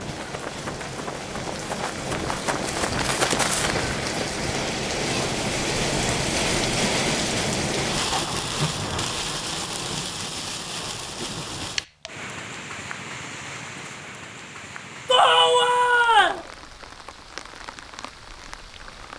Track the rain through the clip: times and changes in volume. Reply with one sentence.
The rain can be heard from 0.0 to 19.1 s, getting louder then quieter.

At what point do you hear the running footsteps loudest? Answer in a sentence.
The volume of the running footsteps peaks at 3 seconds.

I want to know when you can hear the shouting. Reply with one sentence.
The shouting can be heard from 15.1 to 16.4 s.